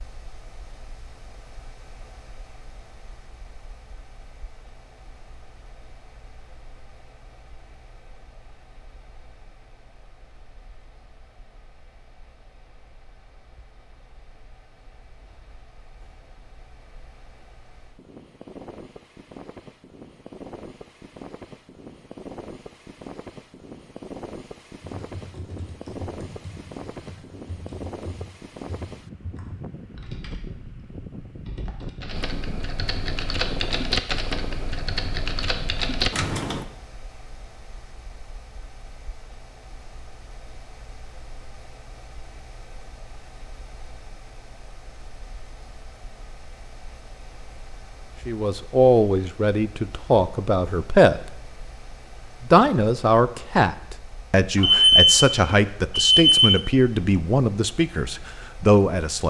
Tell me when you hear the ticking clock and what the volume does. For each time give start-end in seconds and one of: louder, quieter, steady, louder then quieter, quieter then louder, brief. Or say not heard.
not heard.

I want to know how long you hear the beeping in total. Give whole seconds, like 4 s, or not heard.
2 s.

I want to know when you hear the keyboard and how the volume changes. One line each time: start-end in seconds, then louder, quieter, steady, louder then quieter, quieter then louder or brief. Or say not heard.
24.9-36.6 louder.